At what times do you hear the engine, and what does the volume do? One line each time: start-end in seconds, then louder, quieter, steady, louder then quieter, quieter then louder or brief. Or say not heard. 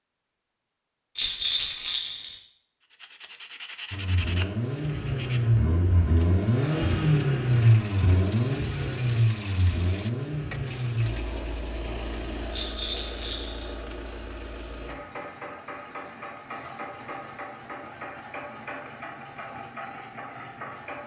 3.9-21.0 quieter.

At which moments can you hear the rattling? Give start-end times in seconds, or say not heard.
1.1-2.4, 12.5-13.7.